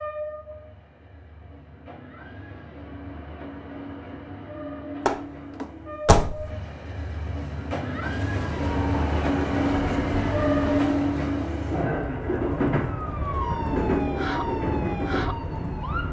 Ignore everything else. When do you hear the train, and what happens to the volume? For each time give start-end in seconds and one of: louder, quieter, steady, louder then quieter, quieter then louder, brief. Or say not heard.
0.0-16.0 louder.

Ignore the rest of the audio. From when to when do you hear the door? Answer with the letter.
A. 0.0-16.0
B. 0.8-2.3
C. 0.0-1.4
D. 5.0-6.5
D.